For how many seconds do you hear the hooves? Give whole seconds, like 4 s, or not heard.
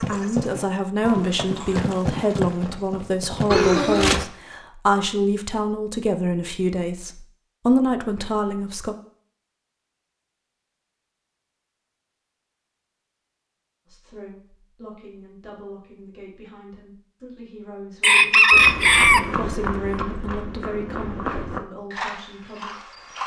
9 s.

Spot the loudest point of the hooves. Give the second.
4 s.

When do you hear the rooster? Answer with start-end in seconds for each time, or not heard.
18.0-19.2.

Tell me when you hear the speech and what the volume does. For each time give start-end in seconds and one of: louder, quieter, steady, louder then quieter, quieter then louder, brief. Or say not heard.
0.0-8.9 steady
13.8-23.0 louder then quieter.